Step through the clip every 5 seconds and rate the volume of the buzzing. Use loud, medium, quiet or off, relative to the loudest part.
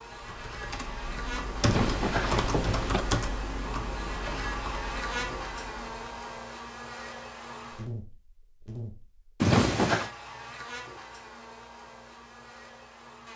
loud, loud, medium.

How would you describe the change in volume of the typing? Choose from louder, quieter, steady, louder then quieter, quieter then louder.
louder then quieter.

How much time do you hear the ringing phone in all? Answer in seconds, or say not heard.
2 s.